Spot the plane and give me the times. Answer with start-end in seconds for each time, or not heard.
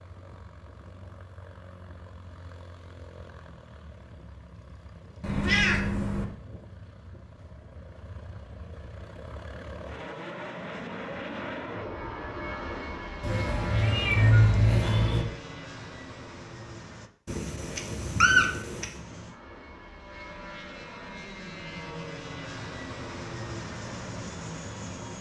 0.0-17.1, 18.9-25.1.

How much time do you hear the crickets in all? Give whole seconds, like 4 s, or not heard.
not heard.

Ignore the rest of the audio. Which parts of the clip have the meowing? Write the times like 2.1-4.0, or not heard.
5.2-6.2, 13.2-15.2, 17.2-18.9.